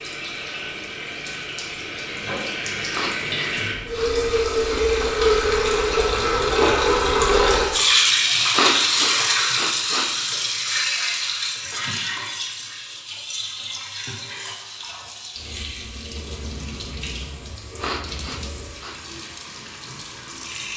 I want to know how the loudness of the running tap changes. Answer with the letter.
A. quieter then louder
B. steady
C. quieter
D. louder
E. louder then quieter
E.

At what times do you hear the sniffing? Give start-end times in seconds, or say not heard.
2.9-4.8, 8.5-10.3, 17.8-18.9.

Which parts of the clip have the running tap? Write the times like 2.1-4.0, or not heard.
0.0-20.7.